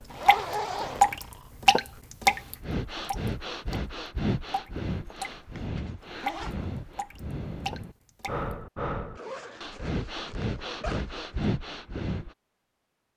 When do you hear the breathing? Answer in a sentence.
You can hear the breathing from 0.8 to 12.3 s.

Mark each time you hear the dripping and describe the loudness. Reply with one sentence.
The dripping can be heard from 0.2 to 5.3 s, getting quieter then louder; and briefly from 6.2 to 8.6 s.